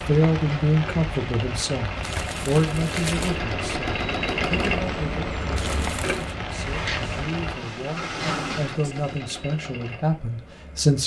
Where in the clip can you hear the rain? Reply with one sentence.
The rain can be heard from 0.0 to 7.6 s.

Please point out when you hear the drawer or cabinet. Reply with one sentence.
The drawer or cabinet can be heard from 6.6 to 9.2 s.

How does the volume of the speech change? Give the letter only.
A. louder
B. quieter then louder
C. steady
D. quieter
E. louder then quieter
B.